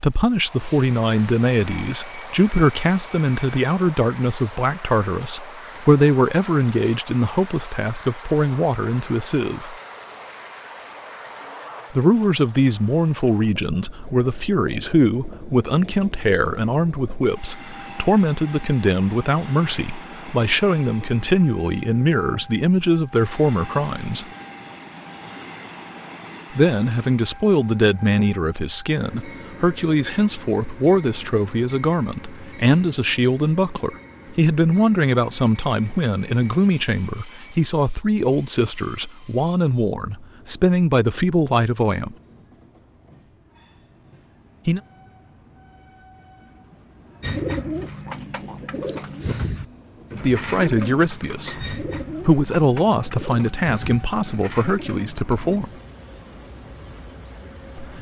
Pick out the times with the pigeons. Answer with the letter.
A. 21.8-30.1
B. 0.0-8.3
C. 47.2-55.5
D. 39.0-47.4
C.